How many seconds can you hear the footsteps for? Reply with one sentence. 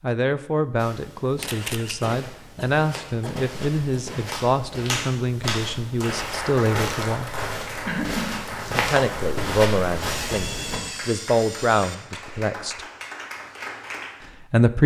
The footsteps can be heard for 10 seconds in total.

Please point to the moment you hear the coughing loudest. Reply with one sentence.
The loudest moment of the coughing is at 8 seconds.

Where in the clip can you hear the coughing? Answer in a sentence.
You can hear the coughing from 2.0 to 4.0 s and from 7.8 to 8.3 s.